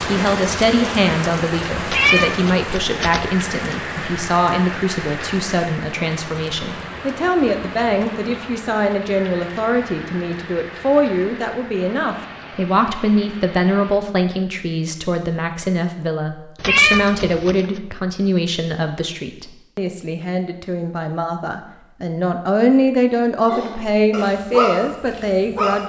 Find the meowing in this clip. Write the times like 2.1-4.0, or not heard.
1.9-3.2, 16.6-17.6.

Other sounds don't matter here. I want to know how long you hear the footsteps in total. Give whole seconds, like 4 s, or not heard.
not heard.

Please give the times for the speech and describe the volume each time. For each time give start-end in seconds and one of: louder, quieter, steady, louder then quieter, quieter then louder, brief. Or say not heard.
0.0-25.8 steady.